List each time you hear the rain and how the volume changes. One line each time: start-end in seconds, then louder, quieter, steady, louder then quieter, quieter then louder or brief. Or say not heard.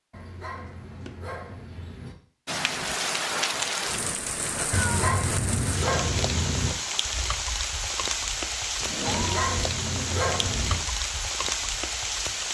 2.5-12.4 steady.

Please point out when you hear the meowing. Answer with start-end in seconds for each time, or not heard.
0.5-1.4, 4.7-6.8, 8.8-9.4.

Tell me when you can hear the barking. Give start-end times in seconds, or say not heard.
0.1-2.1, 4.8-6.8, 9.1-10.8.